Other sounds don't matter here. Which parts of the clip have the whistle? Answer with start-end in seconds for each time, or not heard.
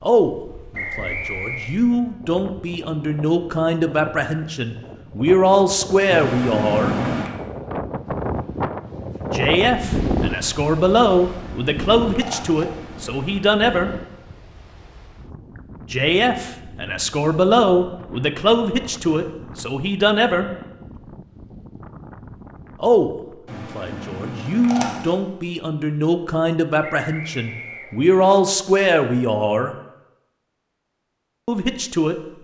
0.7-1.8, 27.0-28.2.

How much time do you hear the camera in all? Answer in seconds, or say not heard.
5 s.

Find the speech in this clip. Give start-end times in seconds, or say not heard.
0.0-7.0, 9.3-13.9, 15.9-20.5, 22.8-29.8, 31.4-32.1.